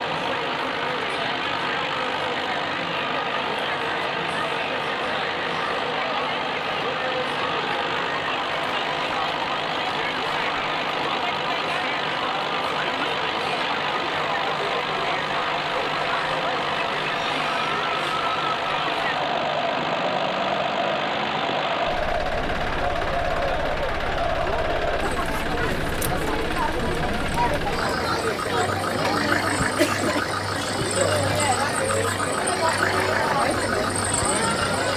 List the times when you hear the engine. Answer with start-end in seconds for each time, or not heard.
0.0-34.9.